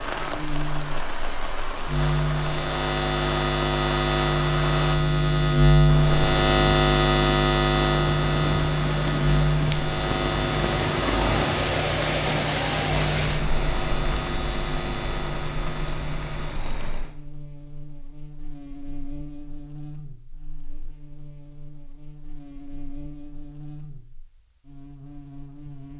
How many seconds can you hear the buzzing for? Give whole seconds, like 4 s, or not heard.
26 s.